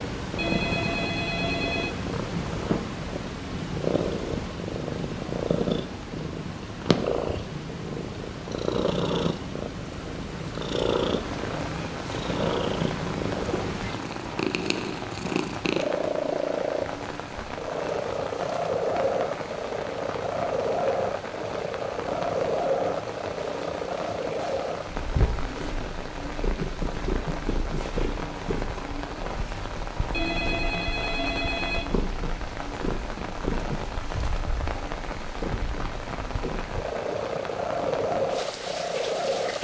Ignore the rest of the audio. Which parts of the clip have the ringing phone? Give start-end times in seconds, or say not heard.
0.3-1.9, 30.1-31.9.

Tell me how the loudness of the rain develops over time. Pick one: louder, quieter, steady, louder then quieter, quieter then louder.
steady.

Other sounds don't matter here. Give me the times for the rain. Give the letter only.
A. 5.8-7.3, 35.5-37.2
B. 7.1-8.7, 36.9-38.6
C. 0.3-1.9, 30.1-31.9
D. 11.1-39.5
D.